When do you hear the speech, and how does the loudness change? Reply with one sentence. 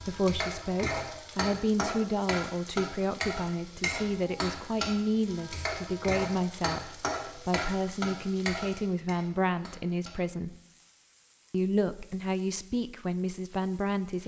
The speech can be heard from 0.0 to 10.6 s, at a steady volume; and briefly from 11.5 to 14.2 s.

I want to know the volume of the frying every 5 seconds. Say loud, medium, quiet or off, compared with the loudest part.
loud, loud, quiet.